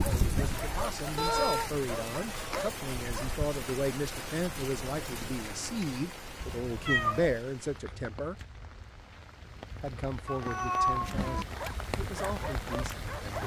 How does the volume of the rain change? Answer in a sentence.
The loudness of the rain goes down, then up.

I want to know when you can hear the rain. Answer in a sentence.
You can hear the rain from 0.0 to 13.4 s.